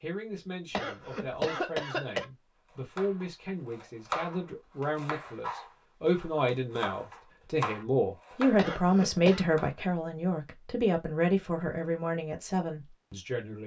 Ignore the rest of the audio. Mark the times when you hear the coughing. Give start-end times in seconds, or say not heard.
0.7-2.2, 8.6-9.4.